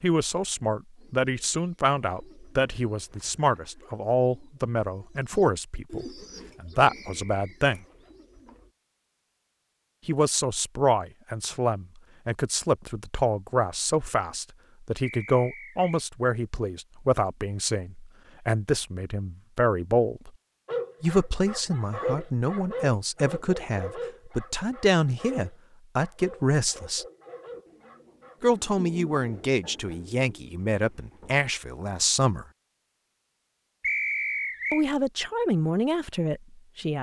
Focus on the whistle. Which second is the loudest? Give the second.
34 s.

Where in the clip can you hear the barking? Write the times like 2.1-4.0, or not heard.
20.6-28.6.